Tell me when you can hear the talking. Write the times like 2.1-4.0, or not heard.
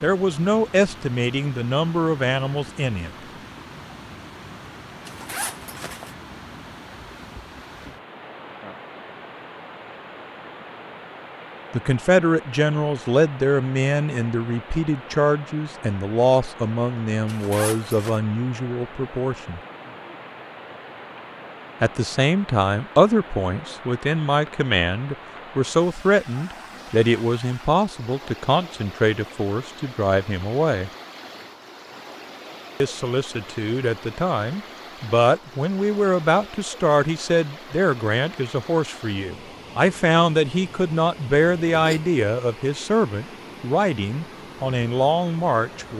0.0-3.1, 11.7-19.6, 21.8-30.9, 32.8-45.9.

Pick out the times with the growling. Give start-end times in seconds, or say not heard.
not heard.